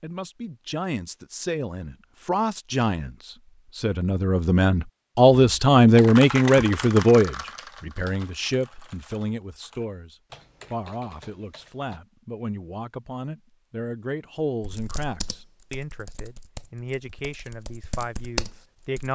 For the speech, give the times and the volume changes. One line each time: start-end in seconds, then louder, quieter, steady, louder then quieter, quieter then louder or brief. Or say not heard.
0.0-19.1 louder then quieter.